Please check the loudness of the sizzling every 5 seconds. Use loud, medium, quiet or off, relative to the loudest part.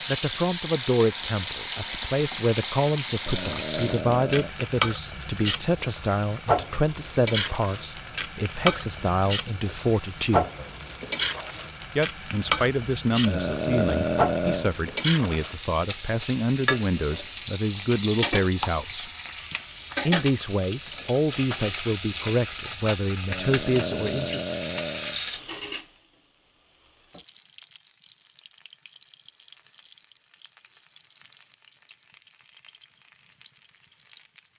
loud, loud, loud, loud, loud, medium, quiet.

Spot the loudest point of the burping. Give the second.
14 s.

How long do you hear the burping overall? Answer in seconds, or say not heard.
5 s.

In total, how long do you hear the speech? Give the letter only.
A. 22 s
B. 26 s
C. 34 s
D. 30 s
A.